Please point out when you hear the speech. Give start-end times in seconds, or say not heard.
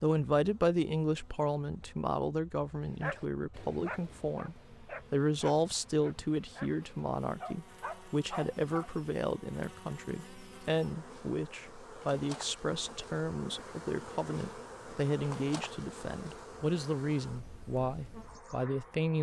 0.0-19.1.